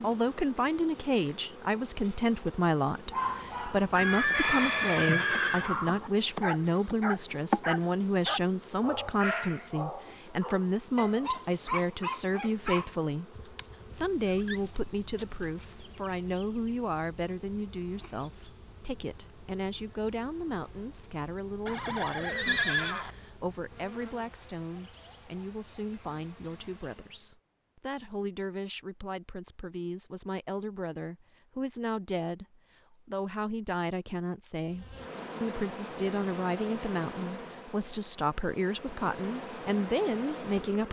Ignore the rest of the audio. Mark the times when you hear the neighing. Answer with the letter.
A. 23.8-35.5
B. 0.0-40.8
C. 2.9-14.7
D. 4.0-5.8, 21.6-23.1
D.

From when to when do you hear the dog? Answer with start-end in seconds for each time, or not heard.
2.9-14.7.